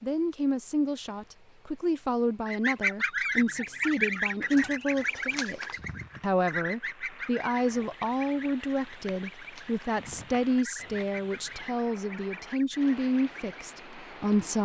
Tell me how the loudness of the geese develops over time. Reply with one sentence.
The loudness of the geese goes down.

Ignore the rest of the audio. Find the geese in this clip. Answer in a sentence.
The geese can be heard from 2.5 to 13.6 s.